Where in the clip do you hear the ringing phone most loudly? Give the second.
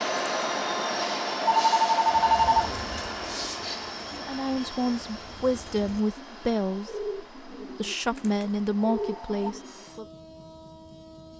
2 s.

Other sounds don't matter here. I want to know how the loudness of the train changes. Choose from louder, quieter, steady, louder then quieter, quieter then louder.
quieter.